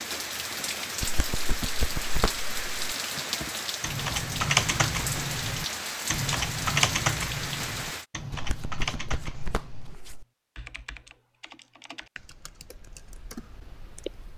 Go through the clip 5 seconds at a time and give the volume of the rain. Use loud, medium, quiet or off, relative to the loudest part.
loud, loud, off.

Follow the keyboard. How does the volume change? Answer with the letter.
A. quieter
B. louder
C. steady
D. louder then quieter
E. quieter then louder
A.